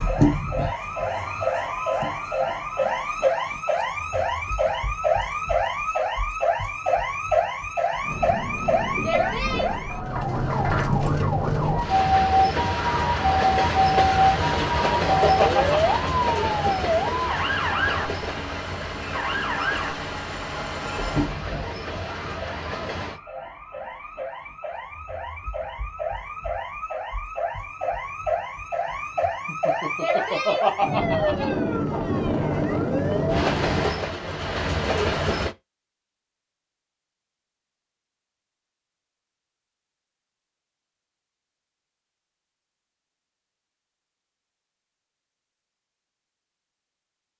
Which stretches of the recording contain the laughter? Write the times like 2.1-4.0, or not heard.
14.4-15.9, 29.4-31.5.